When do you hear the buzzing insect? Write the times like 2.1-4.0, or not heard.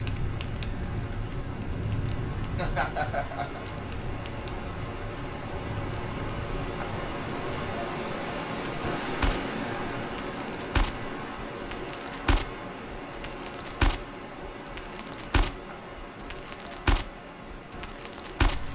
not heard.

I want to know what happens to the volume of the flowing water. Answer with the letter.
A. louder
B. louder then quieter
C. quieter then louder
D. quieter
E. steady
B.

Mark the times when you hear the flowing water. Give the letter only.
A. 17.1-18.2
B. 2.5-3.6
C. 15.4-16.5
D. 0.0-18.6
D.